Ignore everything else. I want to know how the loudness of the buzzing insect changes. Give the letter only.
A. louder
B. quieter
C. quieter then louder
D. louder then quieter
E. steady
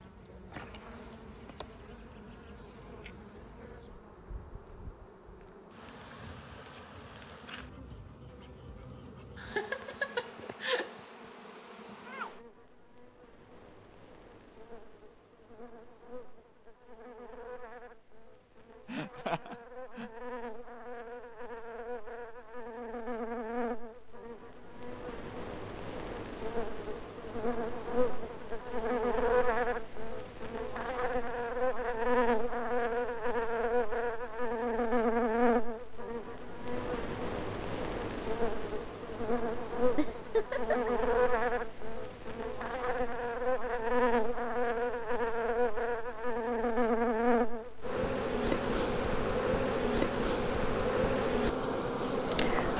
A.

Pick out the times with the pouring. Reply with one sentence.
The pouring can't be heard in this clip.